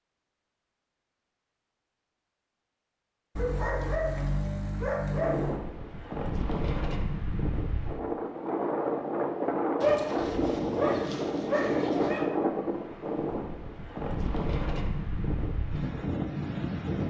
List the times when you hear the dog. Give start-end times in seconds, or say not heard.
3.4-5.6, 9.8-12.2.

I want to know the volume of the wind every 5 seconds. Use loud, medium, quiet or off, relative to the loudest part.
off, loud, loud, loud.